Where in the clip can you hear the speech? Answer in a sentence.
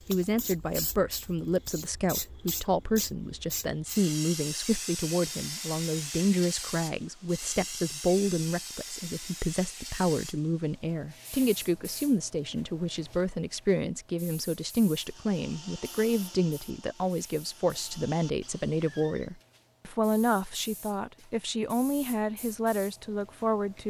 The speech can be heard from 0.1 to 23.8 s.